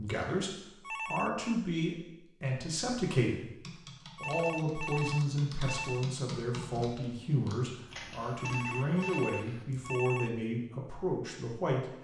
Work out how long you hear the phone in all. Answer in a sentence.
The phone can be heard for 5 seconds in total.